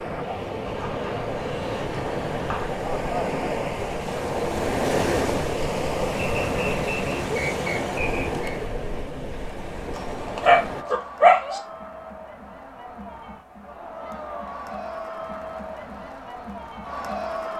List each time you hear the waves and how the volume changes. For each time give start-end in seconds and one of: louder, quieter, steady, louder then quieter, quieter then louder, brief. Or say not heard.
0.0-10.8 louder then quieter.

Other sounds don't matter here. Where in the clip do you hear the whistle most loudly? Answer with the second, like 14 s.
8 s.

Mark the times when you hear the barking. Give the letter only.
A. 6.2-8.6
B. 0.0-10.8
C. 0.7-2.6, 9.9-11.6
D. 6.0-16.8
C.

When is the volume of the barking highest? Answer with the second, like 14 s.
11 s.